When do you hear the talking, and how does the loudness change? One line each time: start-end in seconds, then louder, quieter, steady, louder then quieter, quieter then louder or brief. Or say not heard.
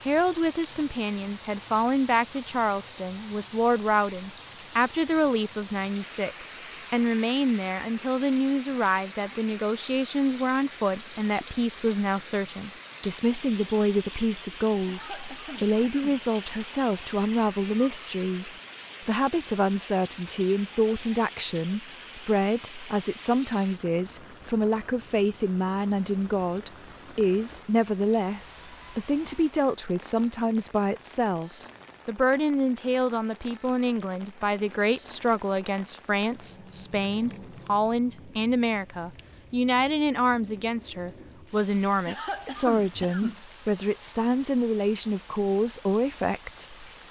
0.1-46.9 steady.